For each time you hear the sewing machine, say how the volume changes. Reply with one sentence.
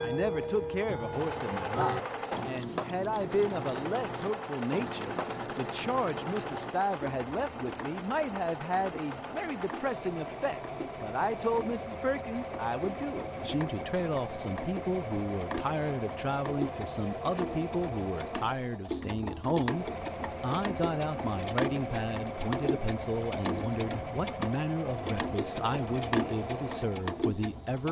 You can hear the sewing machine from 0.1 to 27.8 s, at a steady volume.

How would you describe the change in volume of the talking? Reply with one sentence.
The volume of the talking stays about the same.